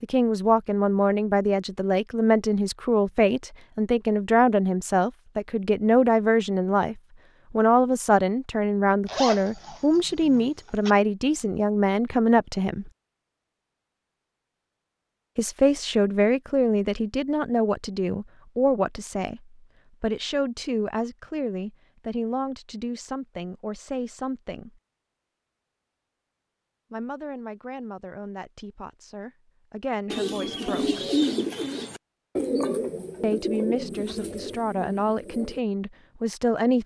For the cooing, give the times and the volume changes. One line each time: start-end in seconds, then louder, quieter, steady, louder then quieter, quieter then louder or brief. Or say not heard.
30.1-35.6 quieter.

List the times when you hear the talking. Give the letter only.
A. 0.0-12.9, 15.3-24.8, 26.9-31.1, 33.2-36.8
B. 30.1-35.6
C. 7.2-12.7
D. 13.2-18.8
A.